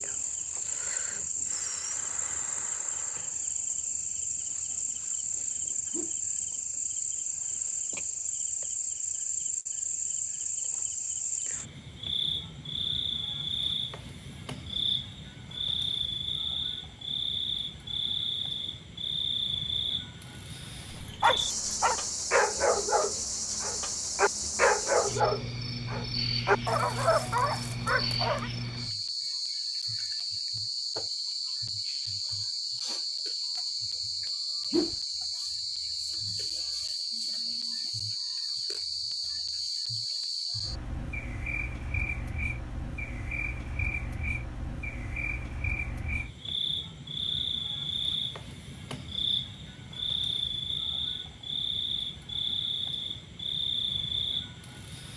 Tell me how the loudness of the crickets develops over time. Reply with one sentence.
The loudness of the crickets stays about the same.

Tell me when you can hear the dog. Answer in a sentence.
You can hear the dog from 20.9 to 28.5 s.